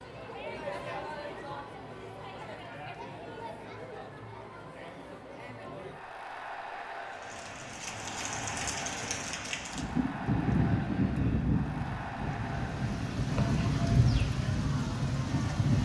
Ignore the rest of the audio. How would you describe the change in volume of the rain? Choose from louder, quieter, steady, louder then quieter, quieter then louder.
louder.